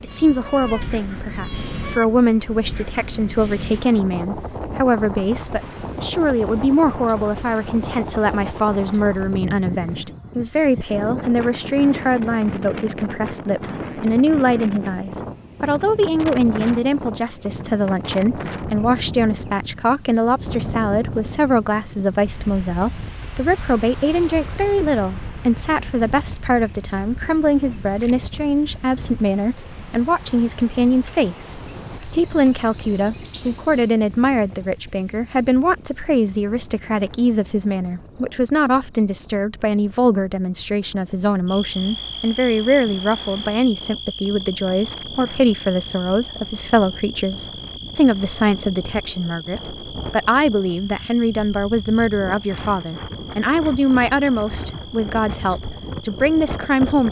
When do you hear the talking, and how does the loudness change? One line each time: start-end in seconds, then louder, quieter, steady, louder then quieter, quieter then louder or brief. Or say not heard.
0.0-57.0 steady.